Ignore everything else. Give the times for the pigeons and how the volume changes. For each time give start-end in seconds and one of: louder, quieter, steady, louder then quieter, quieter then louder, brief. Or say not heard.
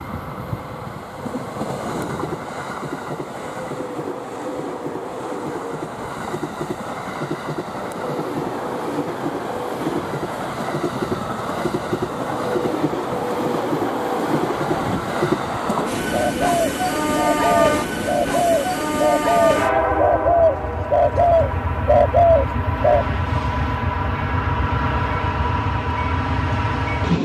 16.2-23.1 louder.